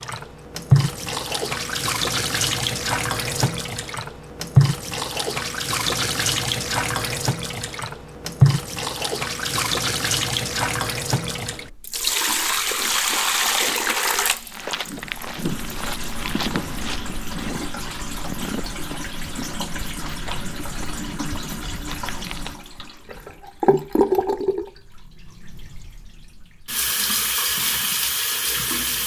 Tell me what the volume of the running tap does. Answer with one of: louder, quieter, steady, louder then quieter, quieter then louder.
quieter then louder.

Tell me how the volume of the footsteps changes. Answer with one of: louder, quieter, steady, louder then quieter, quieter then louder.
quieter.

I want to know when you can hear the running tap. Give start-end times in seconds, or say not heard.
0.0-29.0.